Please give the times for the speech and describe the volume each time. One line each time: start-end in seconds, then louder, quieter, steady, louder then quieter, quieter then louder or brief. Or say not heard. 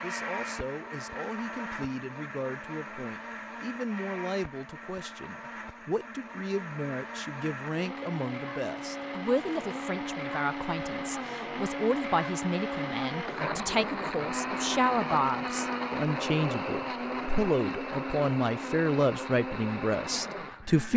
0.0-20.9 louder.